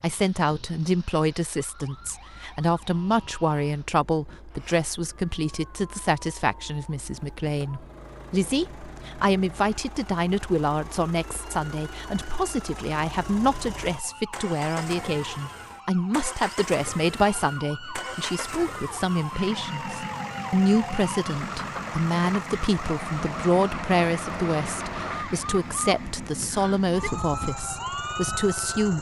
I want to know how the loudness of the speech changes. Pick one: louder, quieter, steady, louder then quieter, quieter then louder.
steady.